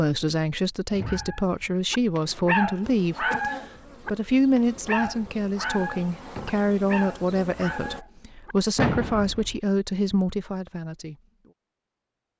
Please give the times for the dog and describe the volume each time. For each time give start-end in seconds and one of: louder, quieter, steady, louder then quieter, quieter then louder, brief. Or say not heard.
1.0-8.6 quieter.